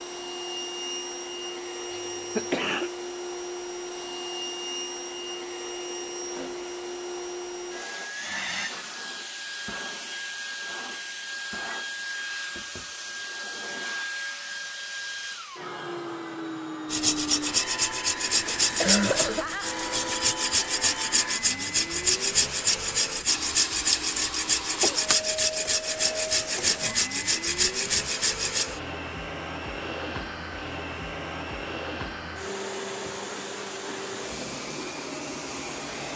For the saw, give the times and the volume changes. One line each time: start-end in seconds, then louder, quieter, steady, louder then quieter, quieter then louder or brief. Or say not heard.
16.9-28.6 steady.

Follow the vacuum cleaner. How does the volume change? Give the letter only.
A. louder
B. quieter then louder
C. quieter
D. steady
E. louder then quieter
D.